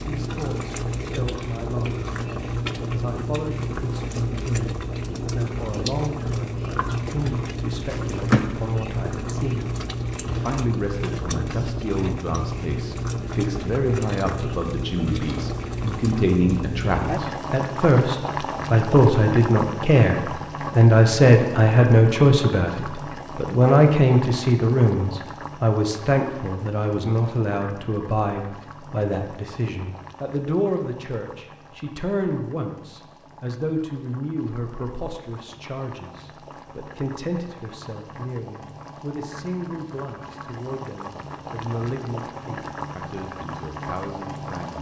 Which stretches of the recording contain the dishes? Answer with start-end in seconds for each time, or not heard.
not heard.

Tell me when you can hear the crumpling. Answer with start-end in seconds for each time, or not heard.
7.9-8.4.